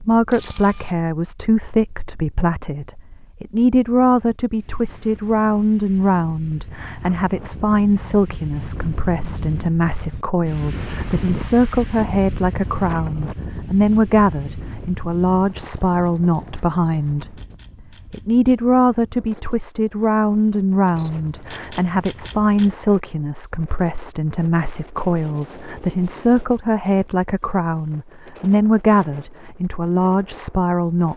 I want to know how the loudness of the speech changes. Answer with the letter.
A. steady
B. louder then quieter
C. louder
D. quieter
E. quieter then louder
A.